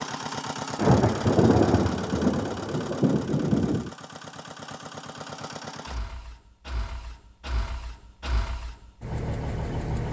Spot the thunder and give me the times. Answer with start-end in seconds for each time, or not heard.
0.8-3.9.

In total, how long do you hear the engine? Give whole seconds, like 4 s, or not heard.
10 s.